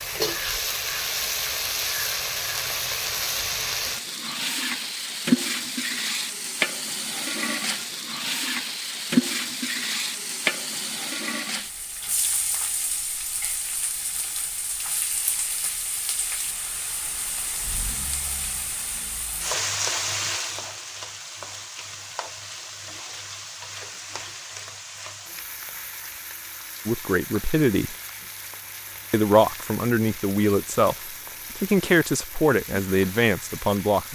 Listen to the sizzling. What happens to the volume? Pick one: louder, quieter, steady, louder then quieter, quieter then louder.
quieter.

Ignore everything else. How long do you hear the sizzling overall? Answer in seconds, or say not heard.
34 s.